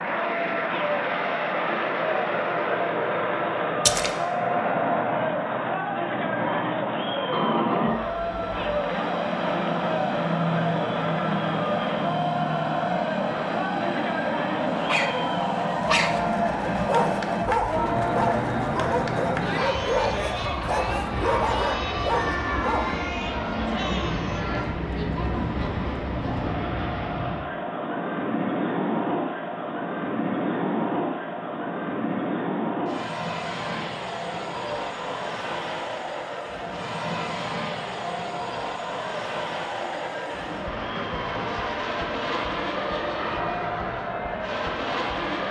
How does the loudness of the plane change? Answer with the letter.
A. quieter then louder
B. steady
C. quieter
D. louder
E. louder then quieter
B.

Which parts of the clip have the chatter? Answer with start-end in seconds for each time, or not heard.
0.0-45.4.